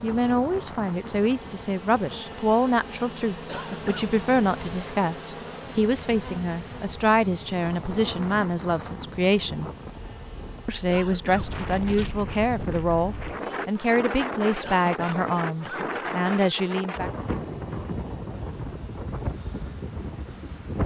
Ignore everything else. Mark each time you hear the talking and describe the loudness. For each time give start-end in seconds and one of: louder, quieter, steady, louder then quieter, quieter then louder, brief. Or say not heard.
0.0-9.7 steady
10.7-17.1 steady.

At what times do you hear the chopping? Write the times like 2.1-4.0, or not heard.
not heard.